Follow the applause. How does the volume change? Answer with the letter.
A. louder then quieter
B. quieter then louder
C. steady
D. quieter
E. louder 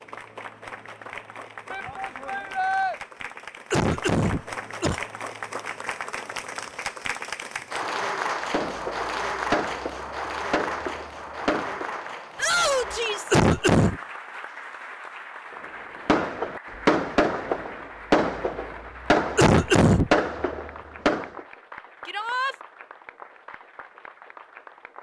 A.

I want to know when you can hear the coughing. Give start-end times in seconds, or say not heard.
3.7-5.0, 13.3-14.0, 19.4-20.1.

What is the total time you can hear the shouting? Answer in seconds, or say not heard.
3 s.